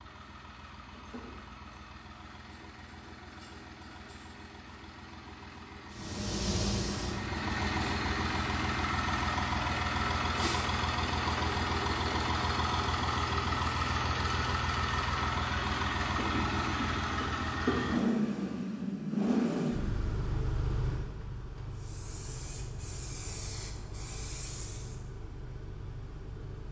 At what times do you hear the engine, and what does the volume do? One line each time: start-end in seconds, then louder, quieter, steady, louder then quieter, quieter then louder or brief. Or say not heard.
0.0-26.6 louder then quieter.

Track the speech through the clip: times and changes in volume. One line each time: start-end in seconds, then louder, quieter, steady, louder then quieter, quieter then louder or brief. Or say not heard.
not heard.